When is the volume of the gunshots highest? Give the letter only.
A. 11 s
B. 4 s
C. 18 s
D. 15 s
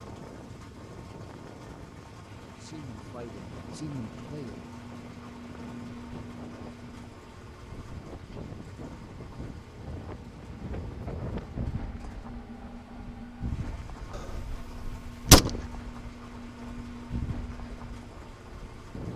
D.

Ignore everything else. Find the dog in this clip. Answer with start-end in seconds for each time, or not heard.
not heard.